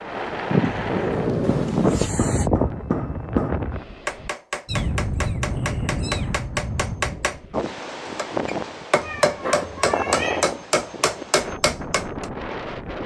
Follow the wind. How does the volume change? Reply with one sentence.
The volume of the wind goes down.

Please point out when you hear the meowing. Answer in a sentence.
You can hear the meowing from 0.6 to 2.5 s, from 4.7 to 6.5 s and from 9.0 to 10.5 s.